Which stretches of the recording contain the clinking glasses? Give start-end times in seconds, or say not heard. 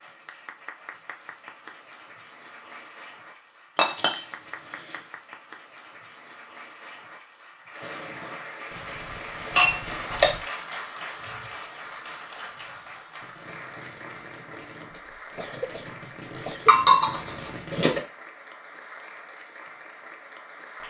3.8-4.2, 9.6-10.3, 16.6-18.0.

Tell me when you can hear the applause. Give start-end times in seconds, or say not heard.
0.0-20.8.